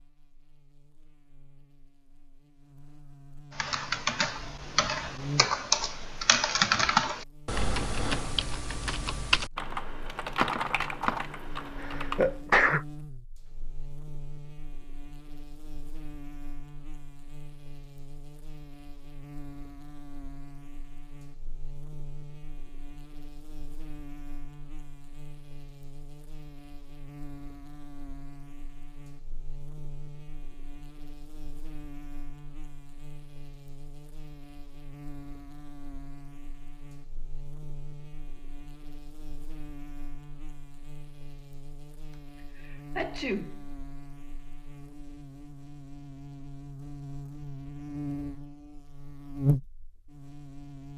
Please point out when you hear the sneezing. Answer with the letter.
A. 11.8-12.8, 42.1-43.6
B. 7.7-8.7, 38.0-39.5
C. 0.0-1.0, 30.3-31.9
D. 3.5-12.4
A.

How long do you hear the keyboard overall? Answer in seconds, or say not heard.
9 s.